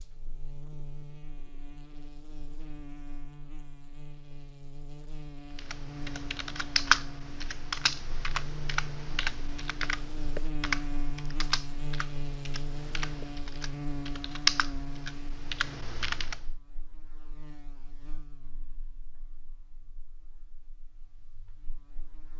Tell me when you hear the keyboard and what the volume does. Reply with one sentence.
You can hear the keyboard from 5.5 to 16.4 s, getting quieter then louder.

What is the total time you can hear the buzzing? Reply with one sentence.
You can hear the buzzing for 22 seconds altogether.